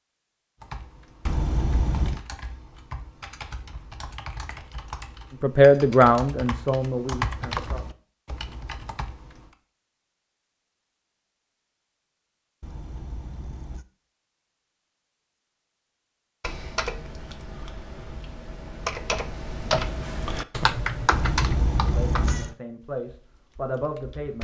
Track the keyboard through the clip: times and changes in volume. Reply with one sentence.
The keyboard can be heard from 0.6 to 9.6 s, getting louder; and from 16.4 to 24.3 s, getting louder then quieter.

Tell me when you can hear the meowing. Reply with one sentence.
You can hear the meowing from 1.2 to 2.2 s, from 12.6 to 13.8 s and from 21.1 to 22.5 s.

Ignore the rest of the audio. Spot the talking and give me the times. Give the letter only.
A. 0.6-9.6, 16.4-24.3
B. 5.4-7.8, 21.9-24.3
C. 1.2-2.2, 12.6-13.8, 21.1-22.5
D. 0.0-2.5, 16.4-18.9
B.